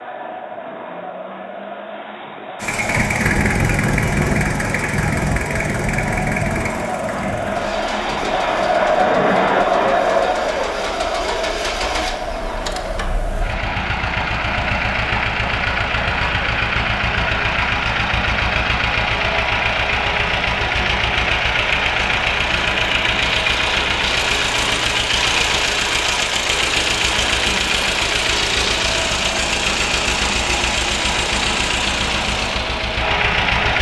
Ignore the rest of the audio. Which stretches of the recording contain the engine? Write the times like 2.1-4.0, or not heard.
2.6-33.7.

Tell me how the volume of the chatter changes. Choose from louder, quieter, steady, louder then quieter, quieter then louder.
louder then quieter.